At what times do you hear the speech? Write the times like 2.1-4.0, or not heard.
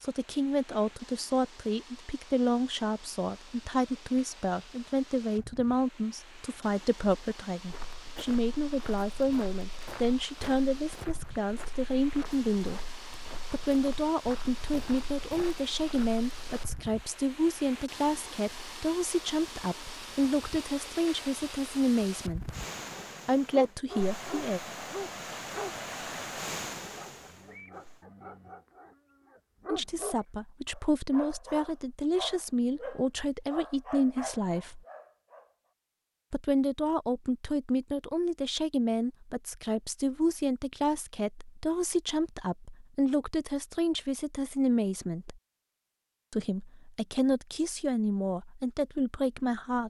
0.0-12.8, 13.5-22.5, 23.2-24.6, 29.7-34.8, 36.3-45.4, 46.3-49.8.